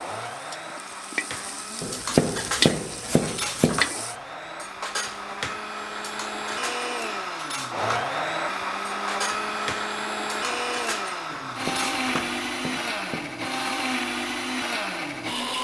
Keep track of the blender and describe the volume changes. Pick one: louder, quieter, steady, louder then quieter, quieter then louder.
louder.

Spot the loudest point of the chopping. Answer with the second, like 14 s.
2 s.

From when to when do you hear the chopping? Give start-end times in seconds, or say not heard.
1.8-3.8, 11.4-13.3.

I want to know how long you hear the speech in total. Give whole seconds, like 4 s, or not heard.
not heard.